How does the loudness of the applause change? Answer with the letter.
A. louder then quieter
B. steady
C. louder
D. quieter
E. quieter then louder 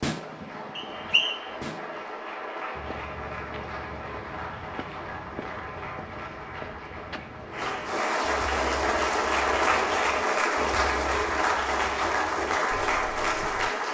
C.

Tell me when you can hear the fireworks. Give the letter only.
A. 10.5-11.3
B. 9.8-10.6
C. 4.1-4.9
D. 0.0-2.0
D.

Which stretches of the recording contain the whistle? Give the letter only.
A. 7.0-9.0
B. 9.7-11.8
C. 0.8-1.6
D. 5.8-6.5
C.